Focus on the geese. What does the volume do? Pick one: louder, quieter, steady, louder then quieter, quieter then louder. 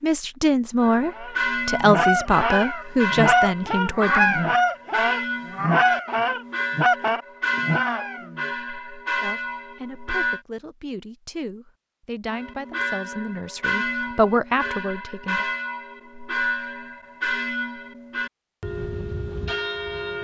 steady.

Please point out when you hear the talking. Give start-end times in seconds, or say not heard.
0.0-4.4, 9.2-15.4.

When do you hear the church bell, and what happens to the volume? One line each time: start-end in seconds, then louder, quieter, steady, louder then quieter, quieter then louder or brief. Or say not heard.
0.8-10.4 steady
12.2-20.1 steady.